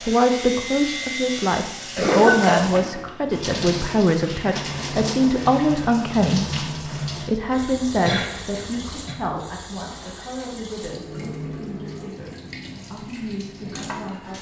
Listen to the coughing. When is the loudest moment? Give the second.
2 s.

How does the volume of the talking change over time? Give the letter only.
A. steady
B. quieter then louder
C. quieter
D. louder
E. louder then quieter
C.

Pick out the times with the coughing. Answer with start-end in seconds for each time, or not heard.
1.9-3.1, 7.5-9.2.